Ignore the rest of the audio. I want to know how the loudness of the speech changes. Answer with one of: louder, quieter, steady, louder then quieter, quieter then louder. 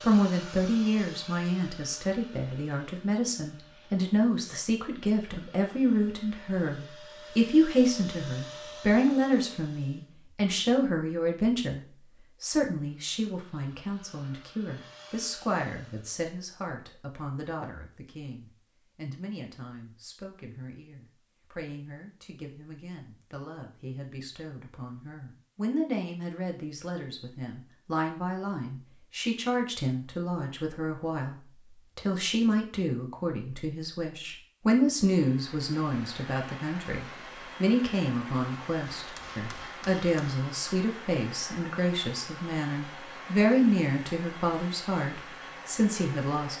quieter then louder.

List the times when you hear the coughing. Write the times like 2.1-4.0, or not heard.
not heard.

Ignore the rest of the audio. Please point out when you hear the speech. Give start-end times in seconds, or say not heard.
0.0-11.8, 12.4-46.5.